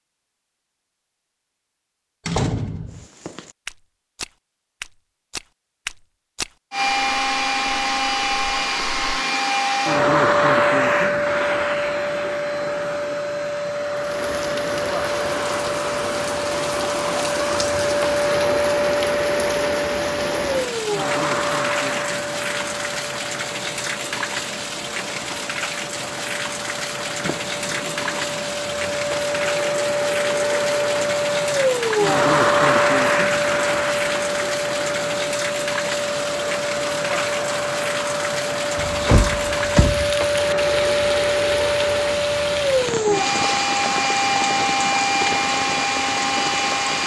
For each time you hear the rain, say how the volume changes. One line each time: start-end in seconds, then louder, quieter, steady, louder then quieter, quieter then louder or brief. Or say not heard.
13.9-47.0 steady.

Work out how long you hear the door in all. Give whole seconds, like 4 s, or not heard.
3 s.